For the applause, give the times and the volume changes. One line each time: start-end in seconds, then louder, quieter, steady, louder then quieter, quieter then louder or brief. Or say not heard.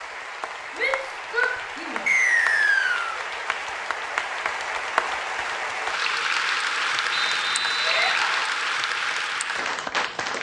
0.0-10.3 louder.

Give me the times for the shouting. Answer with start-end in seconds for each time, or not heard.
0.8-2.0, 7.8-8.6.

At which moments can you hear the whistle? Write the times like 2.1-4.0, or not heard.
2.0-3.2, 7.1-8.2.